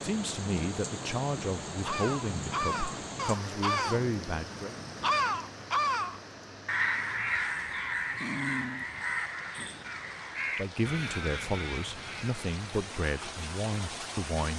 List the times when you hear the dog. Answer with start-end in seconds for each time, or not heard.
8.2-9.0.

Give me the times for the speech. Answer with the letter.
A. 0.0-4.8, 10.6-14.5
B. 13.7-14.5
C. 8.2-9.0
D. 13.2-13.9
A.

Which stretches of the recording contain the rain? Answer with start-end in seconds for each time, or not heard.
0.0-14.5.